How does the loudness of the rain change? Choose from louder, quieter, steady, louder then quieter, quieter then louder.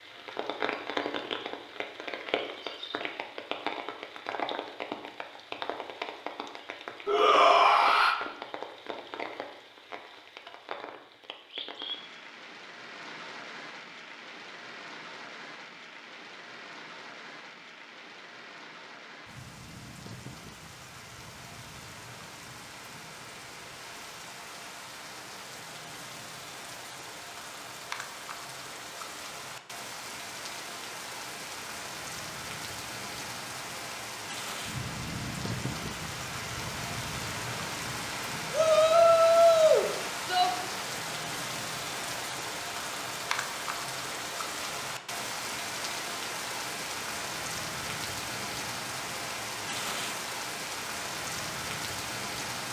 quieter then louder.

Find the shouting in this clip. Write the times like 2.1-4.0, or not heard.
7.0-8.2, 38.5-40.5.